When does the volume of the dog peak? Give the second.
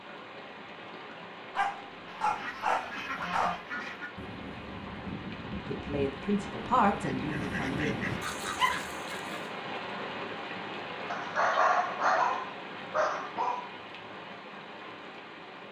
12 s.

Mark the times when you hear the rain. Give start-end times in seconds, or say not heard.
0.0-15.6.